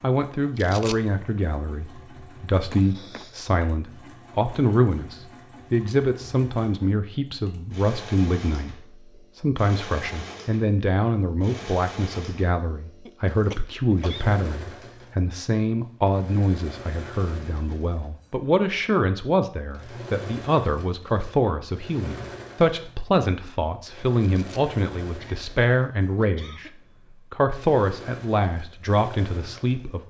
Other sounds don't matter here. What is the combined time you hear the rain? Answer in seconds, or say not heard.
not heard.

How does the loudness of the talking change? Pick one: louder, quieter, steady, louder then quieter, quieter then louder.
steady.